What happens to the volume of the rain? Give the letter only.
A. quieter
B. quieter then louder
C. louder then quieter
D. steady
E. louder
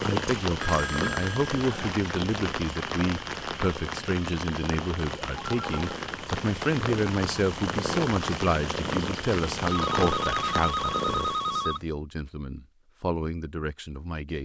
D.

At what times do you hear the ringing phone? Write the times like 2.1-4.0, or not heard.
0.6-1.9, 5.3-6.0, 9.7-11.9.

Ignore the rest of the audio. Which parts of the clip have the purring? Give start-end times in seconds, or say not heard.
0.0-11.8.